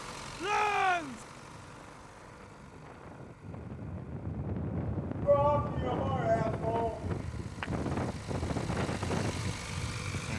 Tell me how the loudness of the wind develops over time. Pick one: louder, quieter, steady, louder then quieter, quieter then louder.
louder.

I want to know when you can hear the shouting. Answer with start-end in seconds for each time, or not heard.
0.4-1.2, 5.2-7.2.